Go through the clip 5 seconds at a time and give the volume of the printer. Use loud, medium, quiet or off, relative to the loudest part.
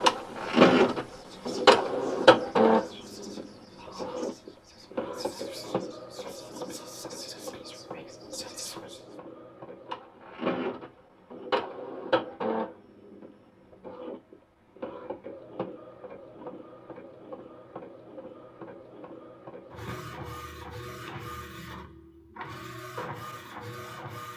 loud, quiet, medium, quiet, quiet.